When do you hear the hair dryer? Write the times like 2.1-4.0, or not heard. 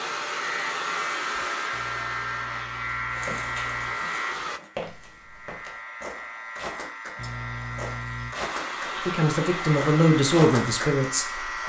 0.0-4.6, 8.3-11.6.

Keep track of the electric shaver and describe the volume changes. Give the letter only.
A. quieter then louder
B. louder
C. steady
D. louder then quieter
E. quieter
A.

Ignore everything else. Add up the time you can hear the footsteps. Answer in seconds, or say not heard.
7 s.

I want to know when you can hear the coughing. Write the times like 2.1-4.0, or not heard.
1.7-4.0, 7.2-8.3.